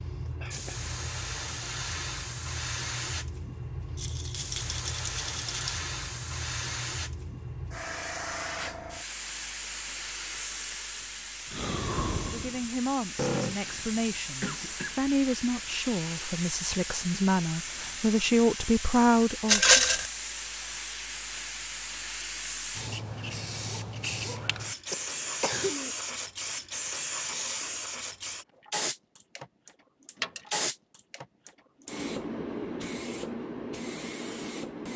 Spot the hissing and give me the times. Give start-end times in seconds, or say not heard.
0.0-34.9.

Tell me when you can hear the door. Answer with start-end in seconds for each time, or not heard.
not heard.